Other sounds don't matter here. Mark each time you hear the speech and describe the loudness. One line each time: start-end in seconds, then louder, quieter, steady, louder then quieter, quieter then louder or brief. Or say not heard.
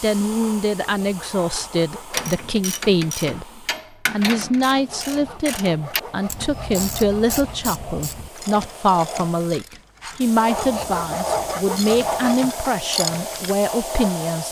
0.0-14.4 steady.